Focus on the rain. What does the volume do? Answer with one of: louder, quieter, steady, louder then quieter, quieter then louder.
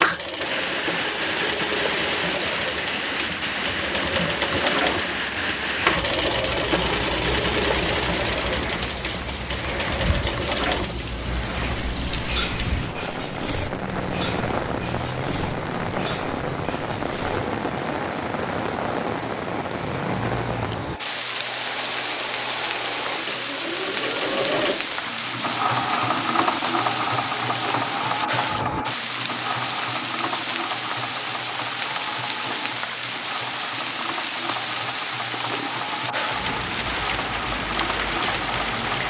steady.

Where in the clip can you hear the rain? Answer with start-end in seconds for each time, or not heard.
0.0-39.0.